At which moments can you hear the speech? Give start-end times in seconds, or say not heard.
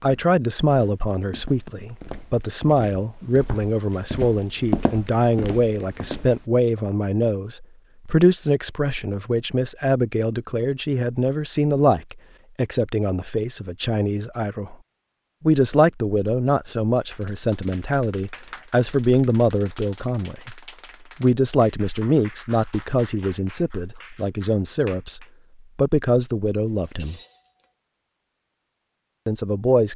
0.0-14.8, 15.4-20.6, 21.2-27.1, 29.2-29.9.